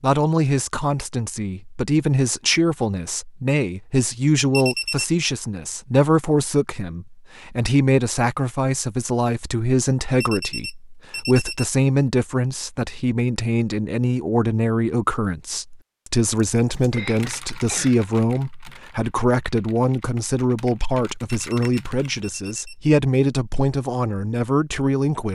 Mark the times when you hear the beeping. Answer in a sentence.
You can hear the beeping from 4.5 to 5.1 s, from 10.2 to 11.7 s and from 21.4 to 22.8 s.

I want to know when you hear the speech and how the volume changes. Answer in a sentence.
You can hear the speech from 0.0 to 25.3 s, at a steady volume.